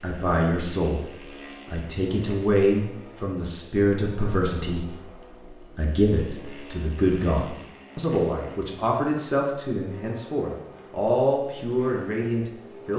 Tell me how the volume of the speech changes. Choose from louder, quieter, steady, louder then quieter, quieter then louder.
steady.